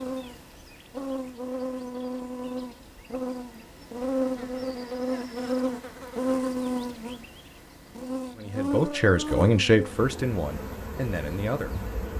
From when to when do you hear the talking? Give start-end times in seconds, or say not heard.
8.3-11.8.